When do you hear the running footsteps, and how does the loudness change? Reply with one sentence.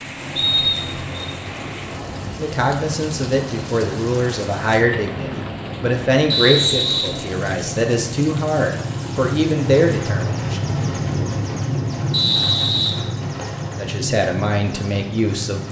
You can't hear the running footsteps here.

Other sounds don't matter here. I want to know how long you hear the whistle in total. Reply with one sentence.
You can hear the whistle for 3 seconds altogether.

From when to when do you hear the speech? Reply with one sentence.
You can hear the speech from 2.4 to 10.8 s and from 13.8 to 15.6 s.